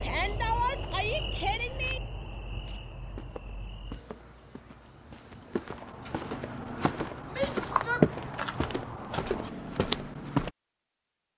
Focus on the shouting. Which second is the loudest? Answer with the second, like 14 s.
1 s.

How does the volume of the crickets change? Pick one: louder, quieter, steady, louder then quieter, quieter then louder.
quieter then louder.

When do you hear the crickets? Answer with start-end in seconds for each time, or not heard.
0.0-9.5.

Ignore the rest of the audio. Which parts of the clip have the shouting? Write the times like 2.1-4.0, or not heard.
0.0-2.0, 7.3-8.1.